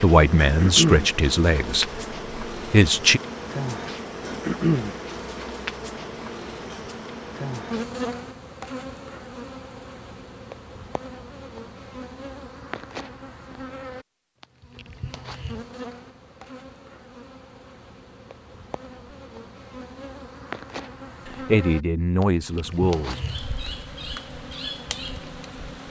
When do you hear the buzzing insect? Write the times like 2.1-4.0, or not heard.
0.0-25.8.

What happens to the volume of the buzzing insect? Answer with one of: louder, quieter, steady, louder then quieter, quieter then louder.
quieter then louder.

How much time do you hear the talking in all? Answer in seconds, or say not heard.
5 s.